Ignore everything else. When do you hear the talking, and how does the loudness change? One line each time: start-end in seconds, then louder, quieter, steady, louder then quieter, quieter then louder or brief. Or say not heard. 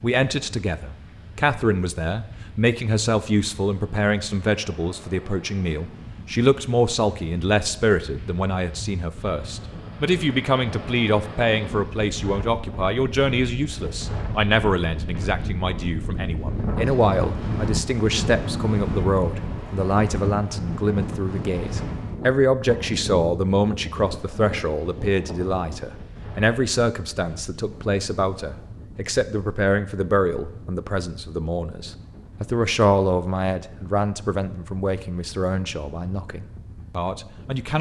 0.0-37.7 steady.